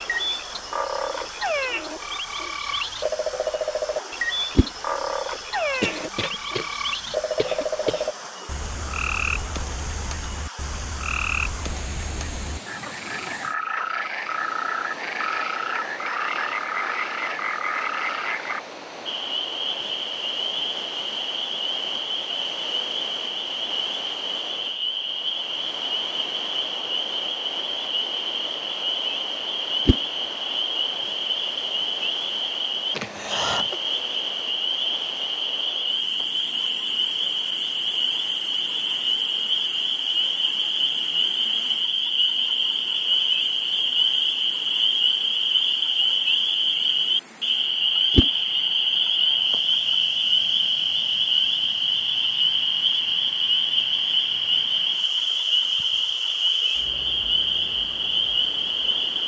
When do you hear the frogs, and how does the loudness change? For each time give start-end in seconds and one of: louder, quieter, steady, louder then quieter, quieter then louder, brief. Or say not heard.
0.0-59.2 louder.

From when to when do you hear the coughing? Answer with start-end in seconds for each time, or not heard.
5.8-8.3, 32.9-33.8.